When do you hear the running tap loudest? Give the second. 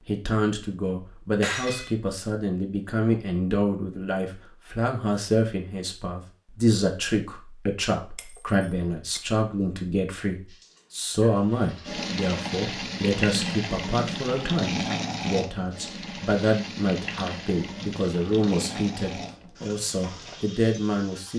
15 s.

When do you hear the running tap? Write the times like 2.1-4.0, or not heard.
10.5-21.3.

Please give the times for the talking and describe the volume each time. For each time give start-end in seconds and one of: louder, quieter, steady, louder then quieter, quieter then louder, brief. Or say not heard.
0.1-21.3 steady.